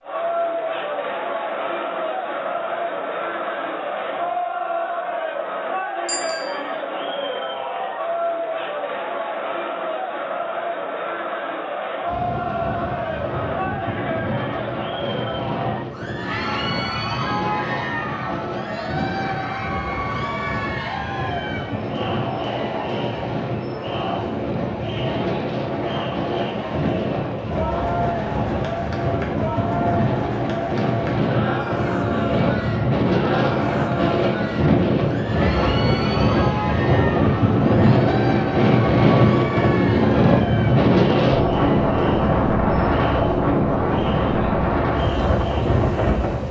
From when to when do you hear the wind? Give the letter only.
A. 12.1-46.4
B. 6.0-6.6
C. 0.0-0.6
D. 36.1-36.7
A.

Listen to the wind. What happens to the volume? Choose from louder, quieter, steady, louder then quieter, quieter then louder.
louder.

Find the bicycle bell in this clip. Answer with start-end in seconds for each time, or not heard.
6.0-6.6.